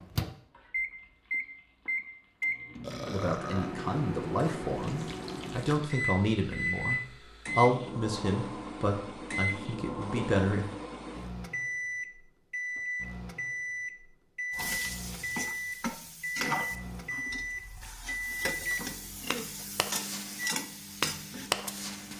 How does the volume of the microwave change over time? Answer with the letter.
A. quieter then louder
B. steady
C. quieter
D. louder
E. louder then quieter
B.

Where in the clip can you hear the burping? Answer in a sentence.
The burping can be heard from 2.8 to 3.7 s.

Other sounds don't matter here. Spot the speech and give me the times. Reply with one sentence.
The speech can be heard from 3.0 to 10.7 s.